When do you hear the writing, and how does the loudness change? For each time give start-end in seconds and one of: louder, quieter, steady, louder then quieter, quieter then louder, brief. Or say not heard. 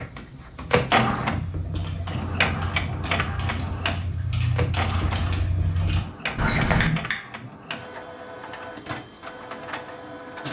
0.6-7.0 louder.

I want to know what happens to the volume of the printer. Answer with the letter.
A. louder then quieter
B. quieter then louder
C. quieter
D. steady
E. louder
C.